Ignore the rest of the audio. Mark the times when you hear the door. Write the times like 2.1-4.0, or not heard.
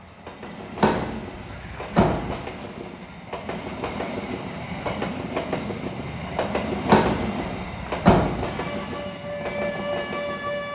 0.8-2.4, 6.8-8.5.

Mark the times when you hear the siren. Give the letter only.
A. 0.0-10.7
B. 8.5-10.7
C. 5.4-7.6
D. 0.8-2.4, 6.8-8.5
B.